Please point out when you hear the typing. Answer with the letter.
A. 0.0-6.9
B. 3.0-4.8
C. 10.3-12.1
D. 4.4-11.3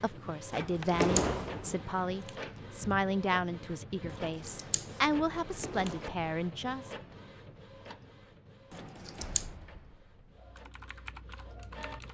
C.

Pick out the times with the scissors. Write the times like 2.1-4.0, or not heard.
0.6-2.3, 4.1-6.1, 8.7-9.4.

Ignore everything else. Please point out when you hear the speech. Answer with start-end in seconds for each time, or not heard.
0.0-6.9.